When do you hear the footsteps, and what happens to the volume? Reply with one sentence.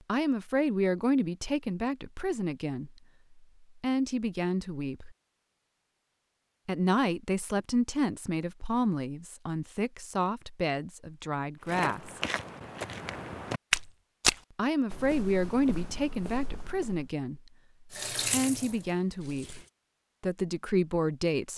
The footsteps can be heard from 11.7 to 17.1 s, getting louder then quieter.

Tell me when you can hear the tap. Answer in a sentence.
The tap can be heard from 17.9 to 19.7 s.